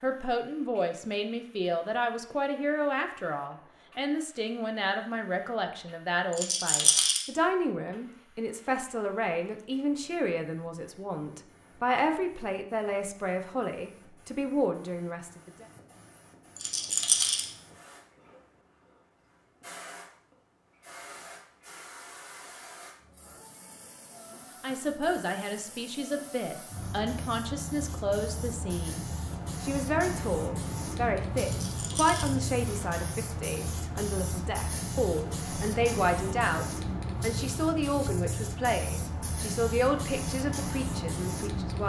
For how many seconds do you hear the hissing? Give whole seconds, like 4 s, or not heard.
42 s.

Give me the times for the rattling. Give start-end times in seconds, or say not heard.
6.3-7.2, 16.6-17.4, 31.4-32.4.